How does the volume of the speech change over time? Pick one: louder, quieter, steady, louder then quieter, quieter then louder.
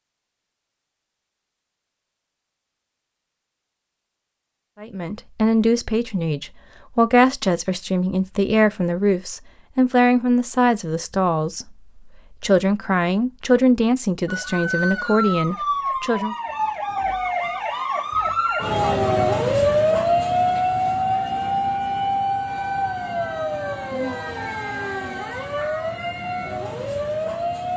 steady.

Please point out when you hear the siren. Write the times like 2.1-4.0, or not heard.
14.2-27.7.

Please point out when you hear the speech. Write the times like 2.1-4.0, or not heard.
4.8-16.4.